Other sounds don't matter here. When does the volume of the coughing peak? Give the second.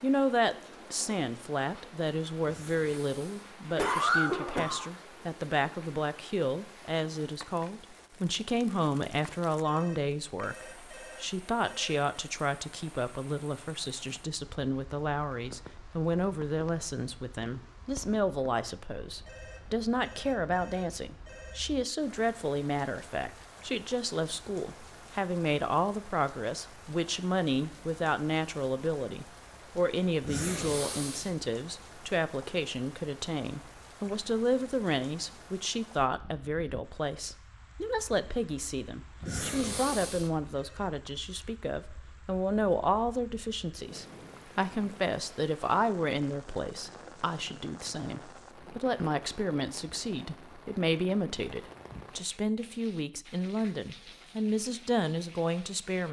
4 s.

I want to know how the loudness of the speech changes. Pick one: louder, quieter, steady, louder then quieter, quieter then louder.
steady.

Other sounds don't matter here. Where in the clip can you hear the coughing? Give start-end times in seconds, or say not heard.
2.5-4.8, 30.2-31.3, 39.2-40.3.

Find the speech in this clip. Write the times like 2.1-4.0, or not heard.
0.0-56.0.